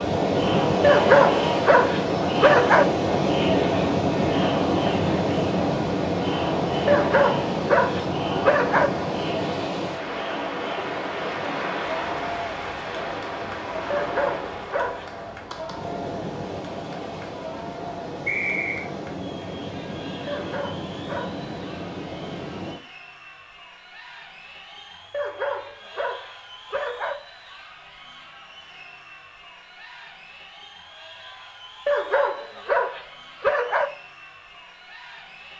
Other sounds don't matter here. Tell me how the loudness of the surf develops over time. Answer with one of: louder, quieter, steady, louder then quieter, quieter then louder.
quieter.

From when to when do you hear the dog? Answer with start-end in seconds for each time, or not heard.
0.8-2.9, 6.8-8.9, 13.9-15.1, 20.2-21.4, 25.1-27.1, 31.9-33.9.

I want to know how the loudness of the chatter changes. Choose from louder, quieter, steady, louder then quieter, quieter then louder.
quieter.